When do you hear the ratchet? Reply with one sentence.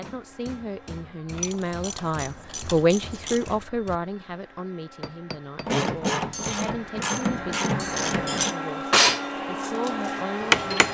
You can hear the ratchet from 1.4 to 3.5 s and from 5.7 to 8.6 s.